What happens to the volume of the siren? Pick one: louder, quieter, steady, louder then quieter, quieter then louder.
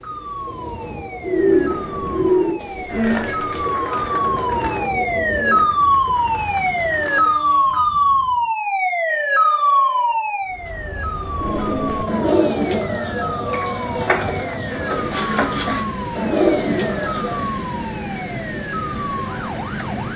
louder then quieter.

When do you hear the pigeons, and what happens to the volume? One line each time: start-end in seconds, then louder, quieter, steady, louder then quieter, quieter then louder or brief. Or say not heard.
1.2-7.3 quieter
11.3-17.5 quieter then louder.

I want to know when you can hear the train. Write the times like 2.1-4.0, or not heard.
0.0-8.5, 10.4-20.1.